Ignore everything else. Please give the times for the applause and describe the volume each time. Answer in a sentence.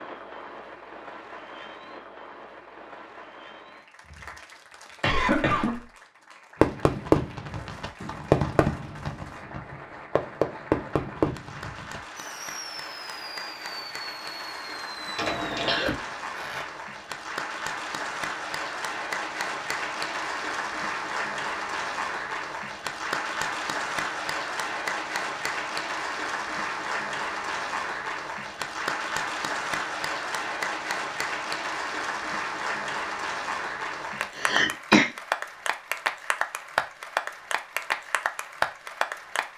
You can hear the applause from 0.0 to 39.5 s, getting louder.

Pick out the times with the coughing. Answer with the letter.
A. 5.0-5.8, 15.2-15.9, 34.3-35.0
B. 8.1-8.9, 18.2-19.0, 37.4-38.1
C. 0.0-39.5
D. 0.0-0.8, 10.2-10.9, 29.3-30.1
A.